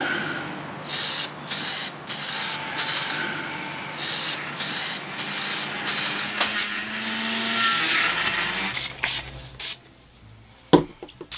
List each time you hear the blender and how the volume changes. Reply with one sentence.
The blender can be heard from 2.3 to 8.8 s, getting louder.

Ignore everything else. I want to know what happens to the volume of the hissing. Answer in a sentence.
The loudness of the hissing stays about the same.